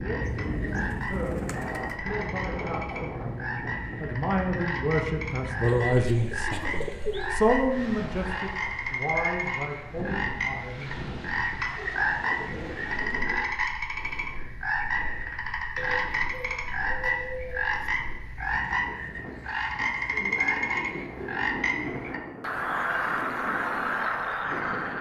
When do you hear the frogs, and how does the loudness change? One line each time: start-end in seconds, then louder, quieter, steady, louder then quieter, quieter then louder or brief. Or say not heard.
0.0-24.9 louder.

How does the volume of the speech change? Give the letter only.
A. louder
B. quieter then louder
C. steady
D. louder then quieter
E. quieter
D.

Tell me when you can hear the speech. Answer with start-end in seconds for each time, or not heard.
0.0-10.9.